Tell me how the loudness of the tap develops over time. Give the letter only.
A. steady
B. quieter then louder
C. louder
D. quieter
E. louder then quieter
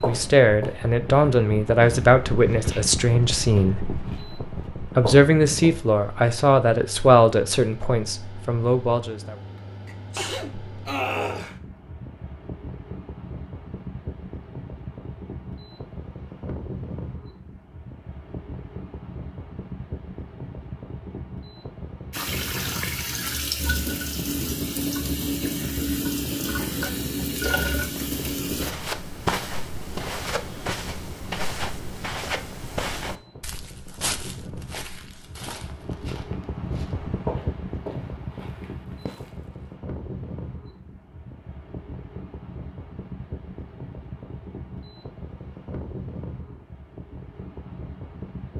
A.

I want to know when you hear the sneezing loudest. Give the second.
11 s.